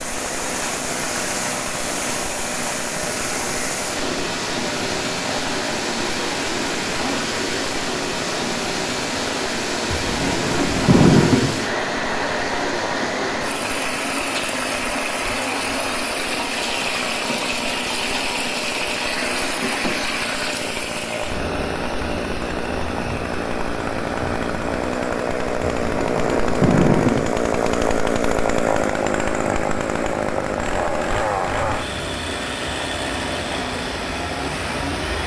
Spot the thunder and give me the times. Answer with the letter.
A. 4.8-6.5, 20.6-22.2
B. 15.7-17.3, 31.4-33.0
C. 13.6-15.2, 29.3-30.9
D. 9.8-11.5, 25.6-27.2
D.